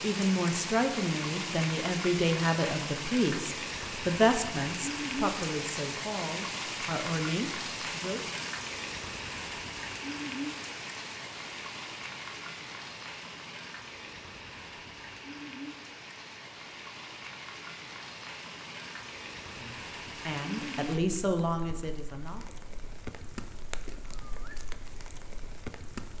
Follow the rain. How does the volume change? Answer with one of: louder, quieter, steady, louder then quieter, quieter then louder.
quieter.